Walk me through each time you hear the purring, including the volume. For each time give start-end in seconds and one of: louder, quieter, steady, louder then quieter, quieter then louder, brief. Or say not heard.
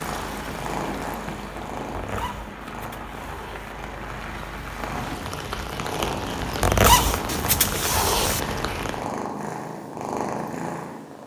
0.0-11.2 quieter then louder.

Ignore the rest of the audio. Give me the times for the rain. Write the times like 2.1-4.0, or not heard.
0.0-9.1.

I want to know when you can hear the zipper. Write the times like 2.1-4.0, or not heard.
1.9-3.8, 6.6-8.4.